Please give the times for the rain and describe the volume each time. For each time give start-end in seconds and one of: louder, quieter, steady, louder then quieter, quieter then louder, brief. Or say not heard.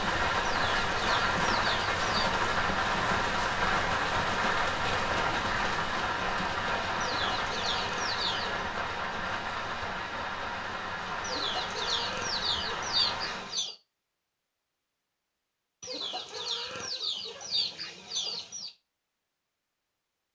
0.0-13.6 quieter.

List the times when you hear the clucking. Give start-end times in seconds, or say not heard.
0.5-2.3, 7.0-8.7, 11.2-13.8, 15.8-18.7.